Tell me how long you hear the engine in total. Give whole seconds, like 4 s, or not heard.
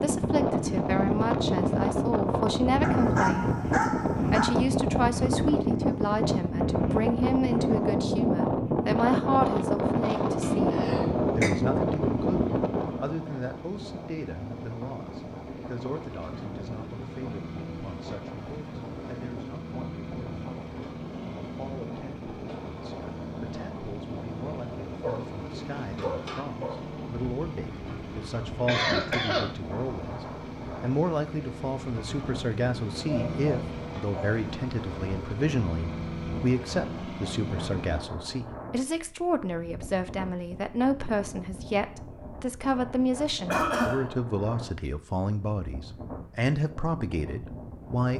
28 s.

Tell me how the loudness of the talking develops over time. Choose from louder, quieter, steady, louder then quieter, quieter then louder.
quieter then louder.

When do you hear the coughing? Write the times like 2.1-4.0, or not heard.
10.7-11.5, 28.6-29.4, 43.5-44.0.